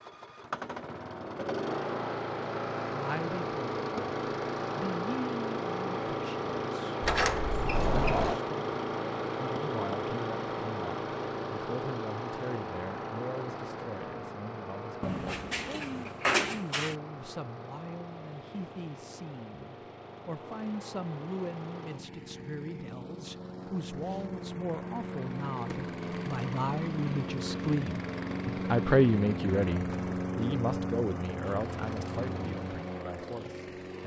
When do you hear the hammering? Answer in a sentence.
The hammering can't be heard in this clip.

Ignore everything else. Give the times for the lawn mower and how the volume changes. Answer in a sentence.
The lawn mower can be heard from 0.0 to 34.0 s, getting quieter then louder.